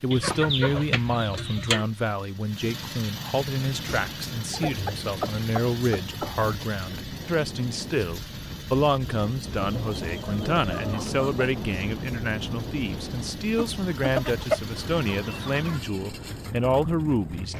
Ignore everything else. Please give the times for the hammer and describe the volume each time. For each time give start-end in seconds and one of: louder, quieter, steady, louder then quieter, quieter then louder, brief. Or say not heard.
not heard.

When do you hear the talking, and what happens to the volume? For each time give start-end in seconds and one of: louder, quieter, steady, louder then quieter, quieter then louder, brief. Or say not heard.
0.0-17.5 steady.